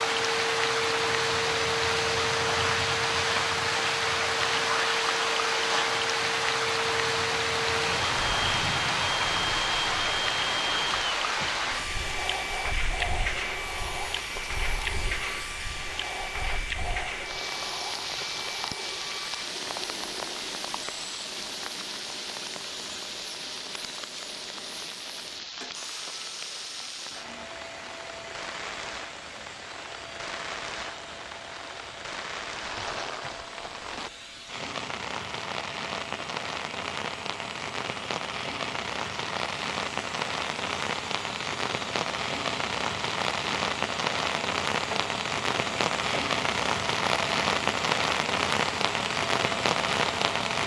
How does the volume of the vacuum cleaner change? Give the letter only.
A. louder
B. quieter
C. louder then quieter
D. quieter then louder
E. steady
D.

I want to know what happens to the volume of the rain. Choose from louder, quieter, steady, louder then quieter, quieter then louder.
quieter then louder.